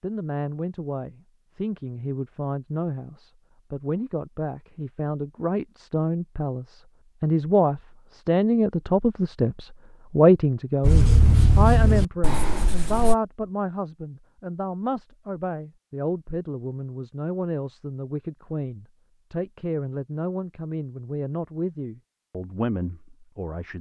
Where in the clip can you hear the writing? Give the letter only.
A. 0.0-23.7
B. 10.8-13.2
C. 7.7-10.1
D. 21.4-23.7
B.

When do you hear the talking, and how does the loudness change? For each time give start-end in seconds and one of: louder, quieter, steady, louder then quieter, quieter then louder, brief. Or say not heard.
0.0-23.7 louder then quieter.